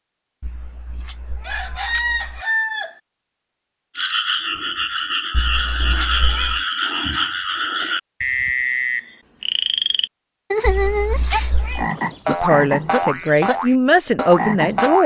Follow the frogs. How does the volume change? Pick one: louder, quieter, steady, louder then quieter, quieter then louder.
steady.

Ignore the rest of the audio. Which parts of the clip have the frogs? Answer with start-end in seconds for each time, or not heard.
4.0-15.0.